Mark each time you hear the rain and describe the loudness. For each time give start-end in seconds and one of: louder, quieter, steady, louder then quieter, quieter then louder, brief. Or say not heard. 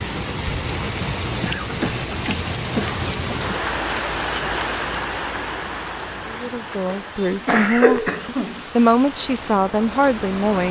0.0-10.6 quieter.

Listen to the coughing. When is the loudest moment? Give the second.
8 s.